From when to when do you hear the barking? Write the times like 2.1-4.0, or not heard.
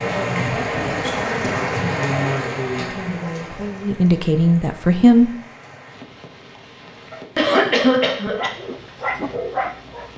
7.1-10.1.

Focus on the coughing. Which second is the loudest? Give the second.
8 s.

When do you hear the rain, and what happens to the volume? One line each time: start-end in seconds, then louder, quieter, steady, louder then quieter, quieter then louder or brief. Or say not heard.
0.0-10.1 quieter.